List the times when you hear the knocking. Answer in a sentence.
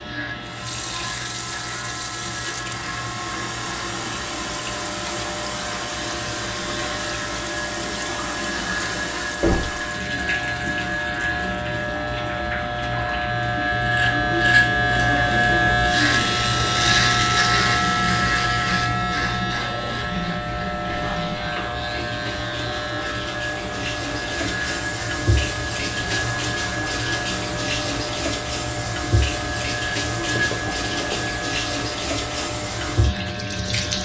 You can hear the knocking from 9.4 to 9.8 s and from 30.4 to 31.1 s.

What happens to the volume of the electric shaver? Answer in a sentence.
The loudness of the electric shaver goes up, then down.